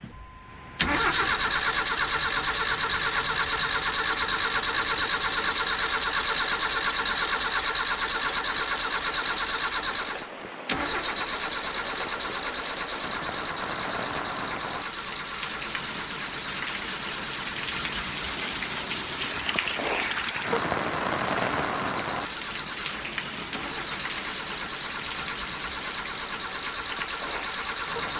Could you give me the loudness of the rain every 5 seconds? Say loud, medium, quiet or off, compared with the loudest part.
quiet, quiet, medium, loud, loud, medium.